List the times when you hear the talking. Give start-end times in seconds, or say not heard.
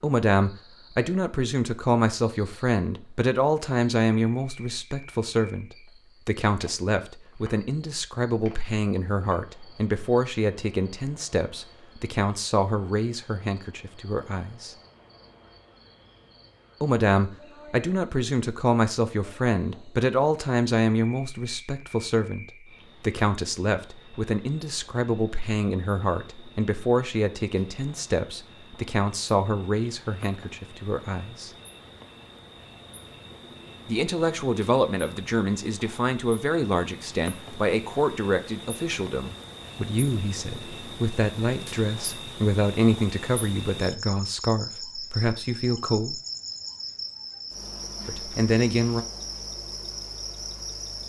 0.0-14.8, 16.8-31.5, 33.9-46.2, 48.0-49.0.